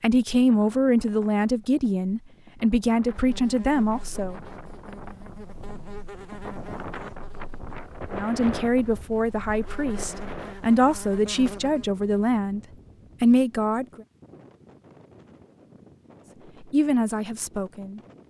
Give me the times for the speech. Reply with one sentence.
You can hear the speech from 0.0 to 4.4 s, from 8.1 to 12.6 s, from 13.2 to 14.0 s and from 16.6 to 18.0 s.